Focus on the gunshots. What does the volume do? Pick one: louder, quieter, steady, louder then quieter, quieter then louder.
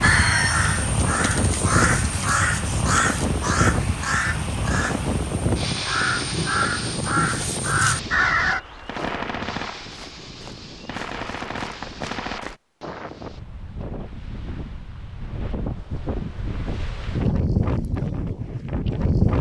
quieter then louder.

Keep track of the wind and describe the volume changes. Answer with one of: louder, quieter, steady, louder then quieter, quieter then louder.
quieter then louder.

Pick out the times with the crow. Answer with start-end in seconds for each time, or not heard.
0.0-8.6.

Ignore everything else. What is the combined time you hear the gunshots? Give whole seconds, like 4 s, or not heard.
4 s.